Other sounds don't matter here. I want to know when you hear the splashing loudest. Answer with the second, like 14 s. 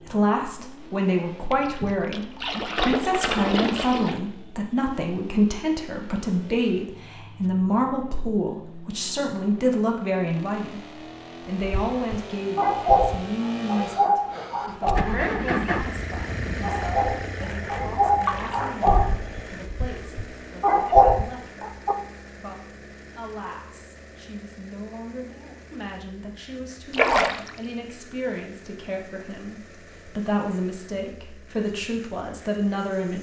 27 s.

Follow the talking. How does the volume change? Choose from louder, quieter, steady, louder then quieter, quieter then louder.
quieter then louder.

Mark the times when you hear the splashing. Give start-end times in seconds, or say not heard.
1.5-4.2, 18.2-18.8, 26.9-27.6.